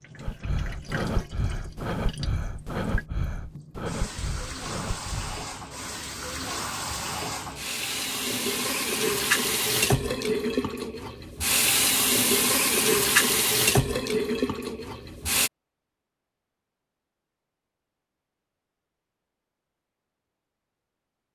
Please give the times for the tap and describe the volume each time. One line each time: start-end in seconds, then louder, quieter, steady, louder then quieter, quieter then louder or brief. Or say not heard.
0.0-15.5 louder.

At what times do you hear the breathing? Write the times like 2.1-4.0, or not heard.
0.2-5.7.